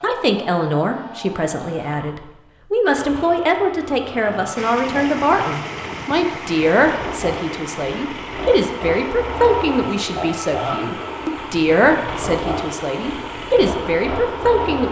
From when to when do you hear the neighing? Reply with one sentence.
You can't hear the neighing here.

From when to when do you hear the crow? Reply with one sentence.
The crow can't be heard in this clip.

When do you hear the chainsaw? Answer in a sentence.
The chainsaw can be heard from 0.0 to 14.8 s.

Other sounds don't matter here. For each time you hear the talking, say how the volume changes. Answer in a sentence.
You can hear the talking from 0.0 to 14.8 s, at a steady volume.